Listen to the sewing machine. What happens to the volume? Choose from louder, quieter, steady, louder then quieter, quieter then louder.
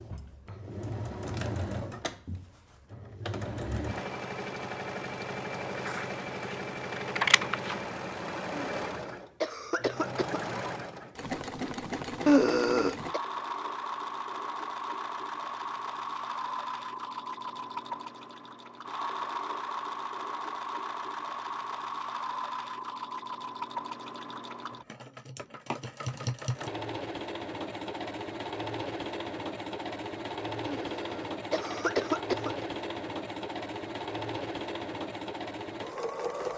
steady.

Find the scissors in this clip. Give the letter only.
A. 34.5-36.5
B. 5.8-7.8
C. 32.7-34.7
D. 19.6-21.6
B.